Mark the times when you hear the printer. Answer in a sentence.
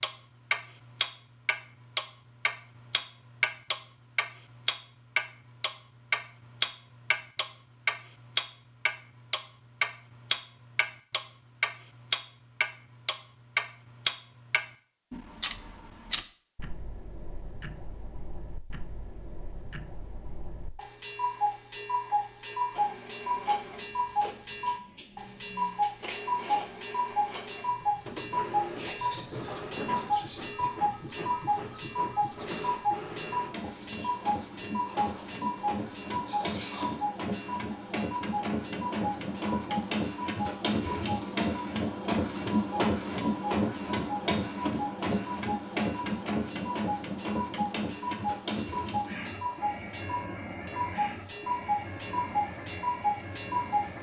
The printer can be heard from 22.7 to 53.9 s.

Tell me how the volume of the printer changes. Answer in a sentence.
The volume of the printer goes up, then down.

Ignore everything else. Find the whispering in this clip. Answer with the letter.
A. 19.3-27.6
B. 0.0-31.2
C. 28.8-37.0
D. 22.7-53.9
C.